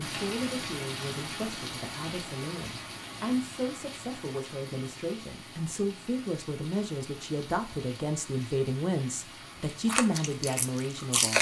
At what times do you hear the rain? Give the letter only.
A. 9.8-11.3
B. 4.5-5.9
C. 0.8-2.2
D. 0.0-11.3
D.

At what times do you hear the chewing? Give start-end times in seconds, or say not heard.
9.8-11.3.